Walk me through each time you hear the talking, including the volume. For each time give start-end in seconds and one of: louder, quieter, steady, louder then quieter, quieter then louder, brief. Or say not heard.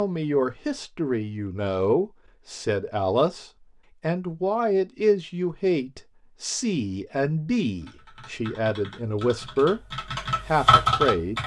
0.0-11.4 steady.